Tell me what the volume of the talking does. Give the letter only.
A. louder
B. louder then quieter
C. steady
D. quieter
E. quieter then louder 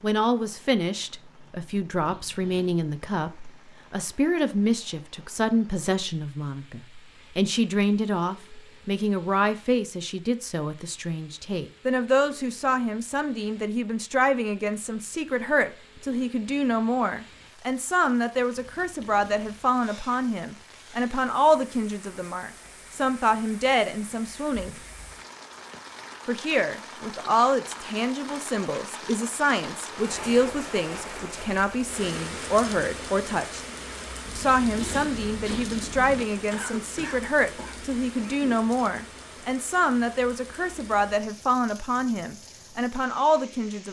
C.